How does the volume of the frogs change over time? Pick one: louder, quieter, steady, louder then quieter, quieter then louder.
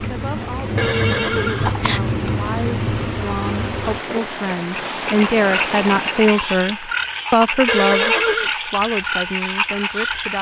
steady.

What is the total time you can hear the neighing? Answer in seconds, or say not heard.
2 s.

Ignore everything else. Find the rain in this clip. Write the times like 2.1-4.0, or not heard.
0.0-6.5.